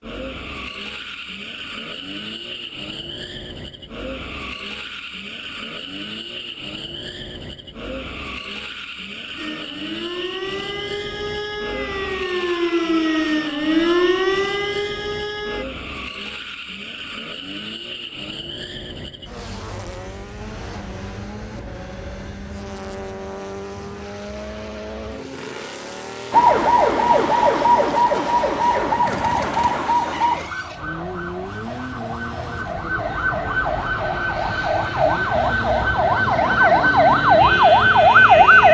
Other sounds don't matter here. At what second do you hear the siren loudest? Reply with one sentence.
The volume of the siren peaks at 38 seconds.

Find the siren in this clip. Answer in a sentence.
The siren can be heard from 9.3 to 15.7 s and from 26.3 to 38.6 s.